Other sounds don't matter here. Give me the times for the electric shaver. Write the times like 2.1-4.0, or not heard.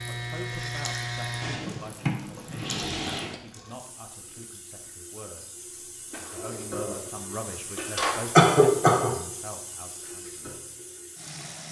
0.0-1.6.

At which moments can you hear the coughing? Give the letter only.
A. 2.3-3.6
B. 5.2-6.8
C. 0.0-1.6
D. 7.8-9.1
D.